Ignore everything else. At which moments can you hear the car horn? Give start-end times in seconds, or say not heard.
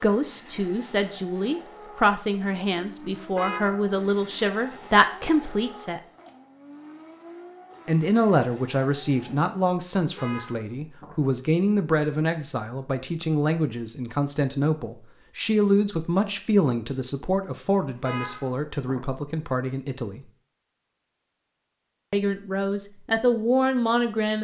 3.1-3.9, 10.0-11.2, 17.9-19.1.